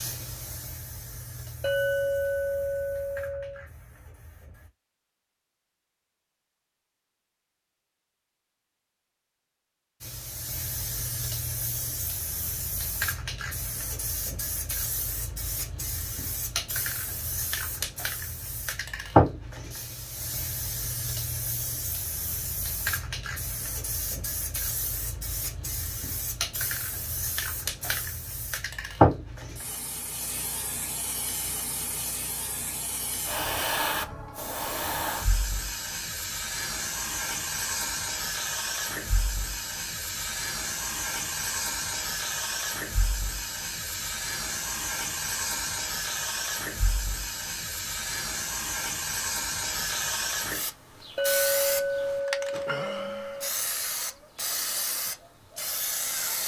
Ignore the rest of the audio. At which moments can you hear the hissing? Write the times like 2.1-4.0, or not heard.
0.0-4.7, 10.0-56.4.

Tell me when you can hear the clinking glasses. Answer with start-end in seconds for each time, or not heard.
1.6-3.6, 51.1-53.5.